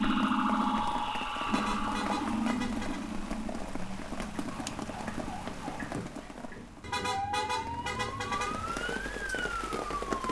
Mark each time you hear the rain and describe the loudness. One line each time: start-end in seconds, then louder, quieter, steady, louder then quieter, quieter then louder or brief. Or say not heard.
0.0-10.2 quieter then louder.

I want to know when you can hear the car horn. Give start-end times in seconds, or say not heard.
1.4-3.1, 6.8-8.7.